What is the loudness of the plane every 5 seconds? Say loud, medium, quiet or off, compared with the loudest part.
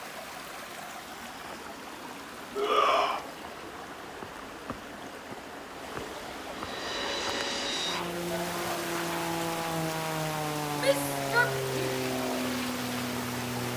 off, loud, loud.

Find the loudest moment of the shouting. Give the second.
3 s.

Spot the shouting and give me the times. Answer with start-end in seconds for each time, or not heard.
2.5-3.2, 10.8-11.9.